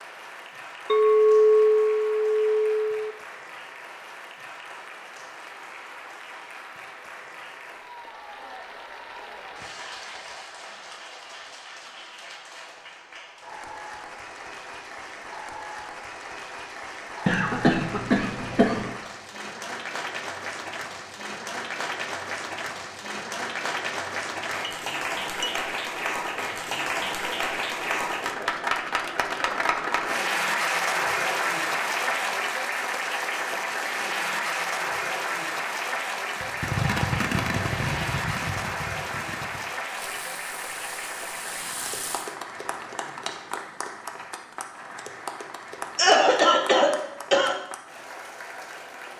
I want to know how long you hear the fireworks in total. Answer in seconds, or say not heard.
6 s.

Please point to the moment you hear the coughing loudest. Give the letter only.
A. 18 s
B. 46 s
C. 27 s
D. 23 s
B.